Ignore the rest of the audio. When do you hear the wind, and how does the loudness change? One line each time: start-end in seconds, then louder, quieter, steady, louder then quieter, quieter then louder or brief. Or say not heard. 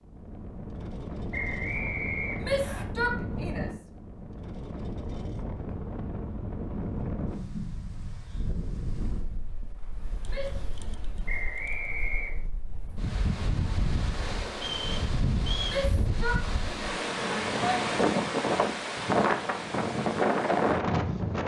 0.0-21.4 quieter then louder.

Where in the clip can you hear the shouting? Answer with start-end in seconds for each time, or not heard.
2.4-3.7, 10.2-10.7, 15.7-17.8.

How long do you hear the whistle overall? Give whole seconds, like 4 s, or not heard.
4 s.